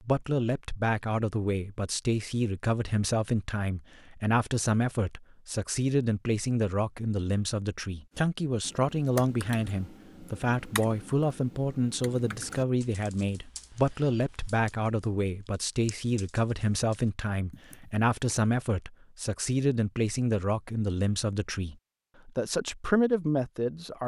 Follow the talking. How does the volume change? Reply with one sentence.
The loudness of the talking stays about the same.